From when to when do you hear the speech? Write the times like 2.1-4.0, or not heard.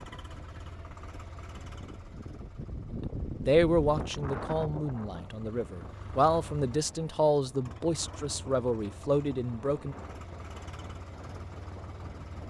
2.9-9.9.